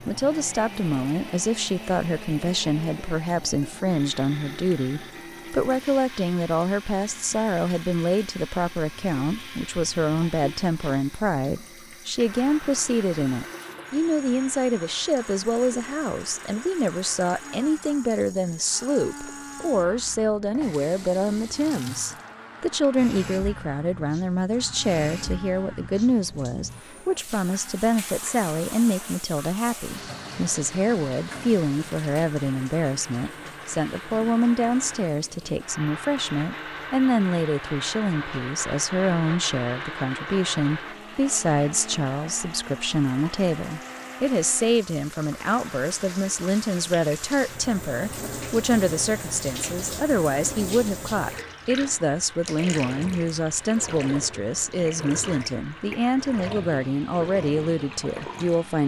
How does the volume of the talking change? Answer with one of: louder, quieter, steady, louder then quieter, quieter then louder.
steady.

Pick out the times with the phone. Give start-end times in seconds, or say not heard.
not heard.